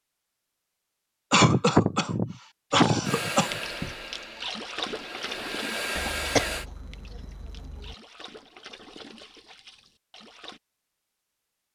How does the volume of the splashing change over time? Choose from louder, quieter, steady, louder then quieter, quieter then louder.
quieter.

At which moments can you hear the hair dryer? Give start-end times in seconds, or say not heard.
3.0-6.7.